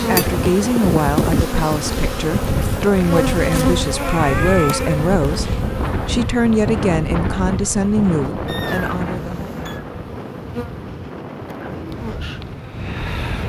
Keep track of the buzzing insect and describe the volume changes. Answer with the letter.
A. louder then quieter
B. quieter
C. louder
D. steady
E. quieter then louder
B.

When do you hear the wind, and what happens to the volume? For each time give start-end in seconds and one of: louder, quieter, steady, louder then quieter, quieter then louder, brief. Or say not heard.
0.0-13.4 quieter.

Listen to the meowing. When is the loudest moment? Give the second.
5 s.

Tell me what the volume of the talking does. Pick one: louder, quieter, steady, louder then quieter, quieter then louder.
steady.